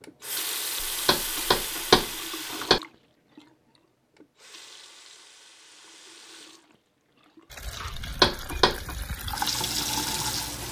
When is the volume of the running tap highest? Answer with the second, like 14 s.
10 s.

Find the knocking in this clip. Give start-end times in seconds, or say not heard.
0.8-2.8, 8.0-8.9.